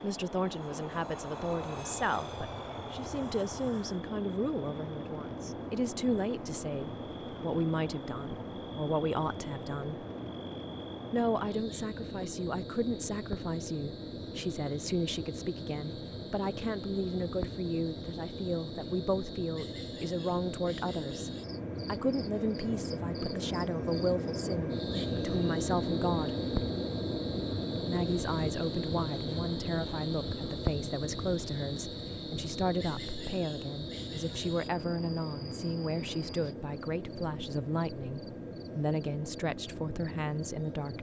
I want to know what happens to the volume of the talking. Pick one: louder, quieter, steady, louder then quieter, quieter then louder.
steady.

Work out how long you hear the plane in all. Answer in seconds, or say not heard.
41 s.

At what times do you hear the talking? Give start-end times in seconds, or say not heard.
0.0-10.1, 11.1-26.4, 27.8-40.9.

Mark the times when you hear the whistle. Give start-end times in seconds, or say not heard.
not heard.